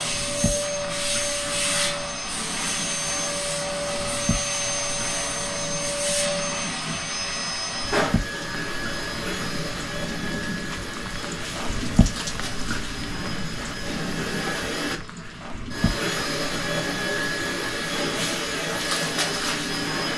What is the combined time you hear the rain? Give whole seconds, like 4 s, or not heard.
20 s.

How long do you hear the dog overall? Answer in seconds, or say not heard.
not heard.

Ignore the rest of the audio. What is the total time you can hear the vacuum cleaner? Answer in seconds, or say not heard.
20 s.